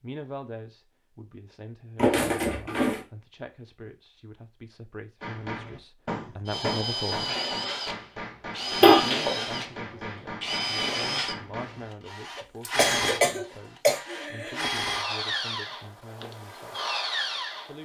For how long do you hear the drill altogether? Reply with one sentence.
The drill can be heard for 11 seconds in total.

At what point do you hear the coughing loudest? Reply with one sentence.
The volume of the coughing peaks at 9 seconds.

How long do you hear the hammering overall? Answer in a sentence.
You can hear the hammering for 7 seconds altogether.